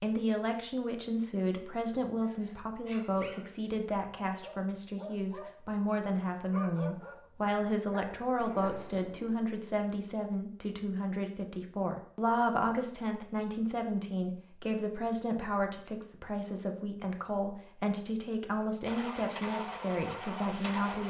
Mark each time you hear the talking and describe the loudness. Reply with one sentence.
The talking can be heard from 0.0 to 21.0 s, at a steady volume.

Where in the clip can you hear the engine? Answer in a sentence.
The engine can be heard from 18.8 to 21.0 s.